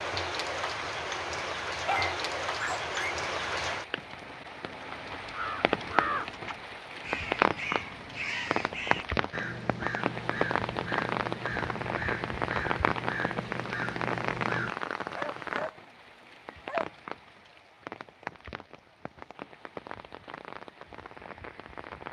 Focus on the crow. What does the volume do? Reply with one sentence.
The volume of the crow stays about the same.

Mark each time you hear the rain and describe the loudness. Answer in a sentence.
You can hear the rain from 0.0 to 22.0 s, getting quieter.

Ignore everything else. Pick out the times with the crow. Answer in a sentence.
The crow can be heard from 5.2 to 14.8 s.